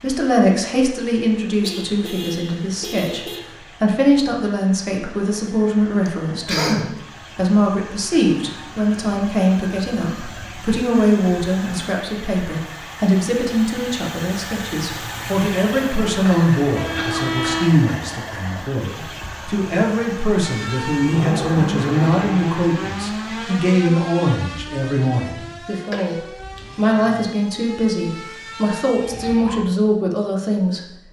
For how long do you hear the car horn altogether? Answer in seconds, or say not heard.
3 s.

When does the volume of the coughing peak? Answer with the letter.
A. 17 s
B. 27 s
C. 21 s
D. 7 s
D.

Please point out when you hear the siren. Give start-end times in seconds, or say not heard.
20.4-29.6.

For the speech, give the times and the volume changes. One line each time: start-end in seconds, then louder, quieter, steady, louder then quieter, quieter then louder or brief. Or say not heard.
0.0-30.8 steady.